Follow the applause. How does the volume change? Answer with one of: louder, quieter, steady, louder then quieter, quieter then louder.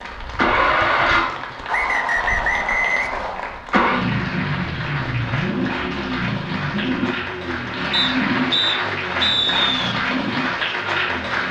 louder.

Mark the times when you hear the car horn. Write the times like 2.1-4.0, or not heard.
not heard.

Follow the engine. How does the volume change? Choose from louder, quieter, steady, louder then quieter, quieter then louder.
quieter.